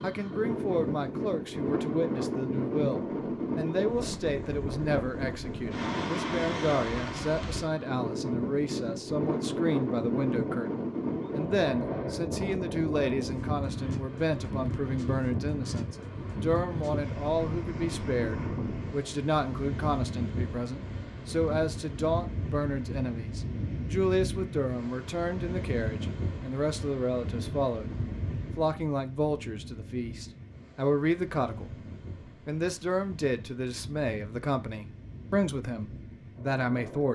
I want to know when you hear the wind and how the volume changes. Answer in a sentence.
The wind can be heard from 0.0 to 37.0 s, getting quieter.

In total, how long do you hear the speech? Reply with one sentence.
The speech can be heard for 36 seconds in total.